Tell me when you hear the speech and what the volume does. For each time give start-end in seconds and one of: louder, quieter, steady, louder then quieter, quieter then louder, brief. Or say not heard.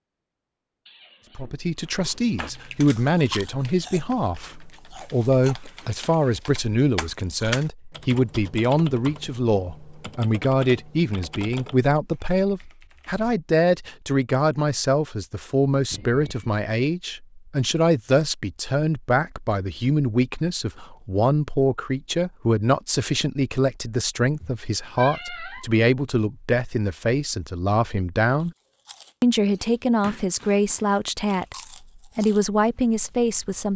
1.4-28.6 steady
29.2-31.6 brief
32.1-33.7 brief.